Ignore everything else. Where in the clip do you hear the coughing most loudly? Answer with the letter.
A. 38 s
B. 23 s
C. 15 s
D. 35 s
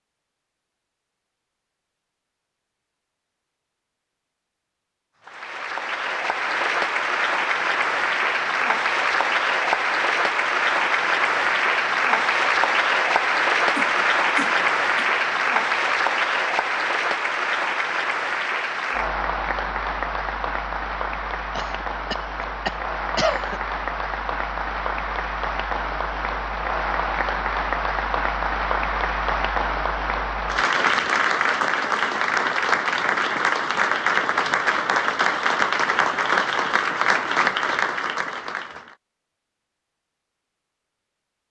B.